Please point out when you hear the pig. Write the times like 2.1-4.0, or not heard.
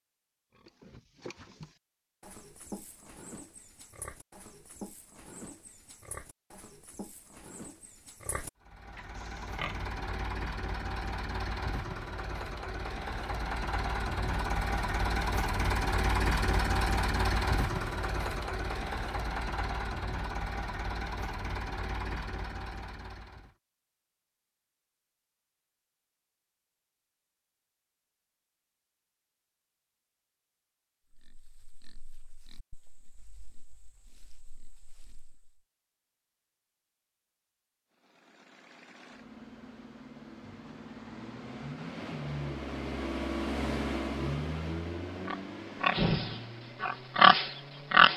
0.6-9.8, 31.1-35.5, 45.2-48.1.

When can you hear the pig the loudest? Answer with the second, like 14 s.
47 s.